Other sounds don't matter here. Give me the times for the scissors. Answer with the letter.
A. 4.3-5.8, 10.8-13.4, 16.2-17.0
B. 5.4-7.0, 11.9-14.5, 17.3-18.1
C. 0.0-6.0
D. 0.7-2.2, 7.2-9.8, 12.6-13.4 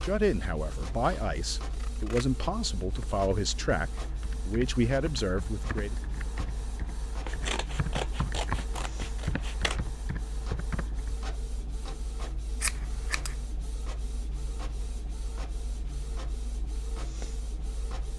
D.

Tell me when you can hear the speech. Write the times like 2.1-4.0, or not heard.
0.0-6.0.